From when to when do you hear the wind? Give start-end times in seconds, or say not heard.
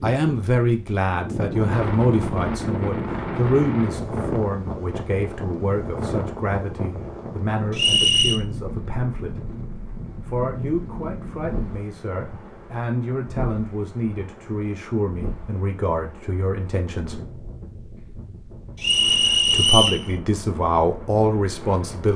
0.0-22.1.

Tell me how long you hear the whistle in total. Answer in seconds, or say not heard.
2 s.